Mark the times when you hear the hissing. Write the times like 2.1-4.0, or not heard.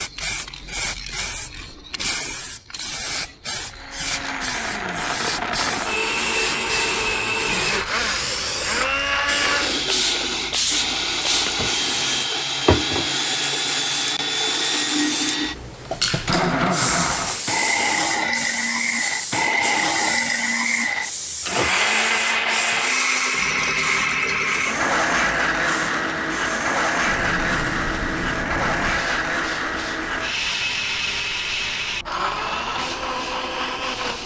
0.0-34.2.